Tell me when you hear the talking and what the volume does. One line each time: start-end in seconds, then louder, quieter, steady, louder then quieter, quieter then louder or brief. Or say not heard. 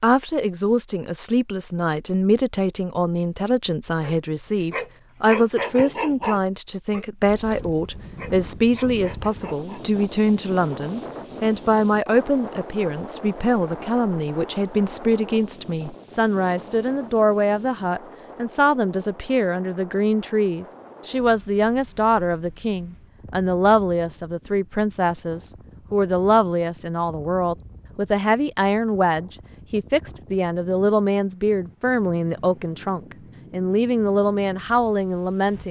0.0-35.6 steady.